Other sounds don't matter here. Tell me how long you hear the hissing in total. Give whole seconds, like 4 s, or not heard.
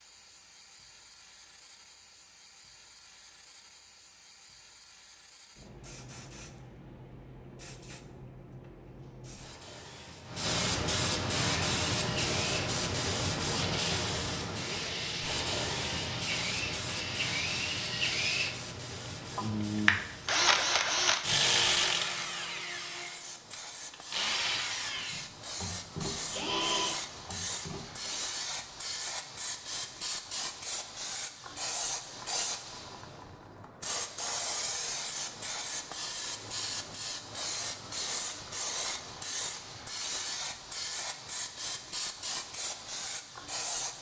44 s.